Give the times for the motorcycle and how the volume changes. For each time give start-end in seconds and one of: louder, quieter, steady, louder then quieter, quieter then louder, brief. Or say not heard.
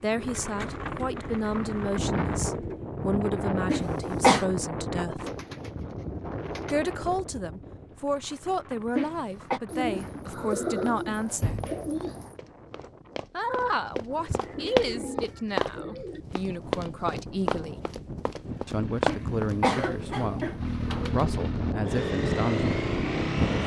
18.4-23.6 louder.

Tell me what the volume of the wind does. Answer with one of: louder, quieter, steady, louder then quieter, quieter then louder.
quieter then louder.